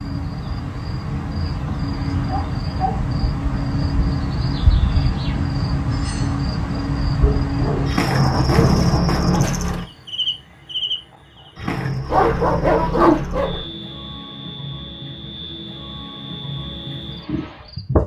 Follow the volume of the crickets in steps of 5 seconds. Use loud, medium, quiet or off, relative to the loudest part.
loud, loud, medium, medium.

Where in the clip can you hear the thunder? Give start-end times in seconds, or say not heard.
8.0-9.5.